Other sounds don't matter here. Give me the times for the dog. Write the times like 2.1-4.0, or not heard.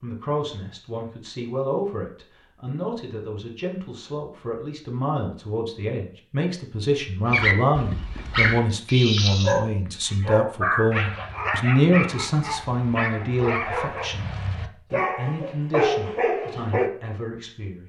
7.2-16.9.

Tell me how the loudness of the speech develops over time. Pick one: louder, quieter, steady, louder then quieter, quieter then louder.
louder then quieter.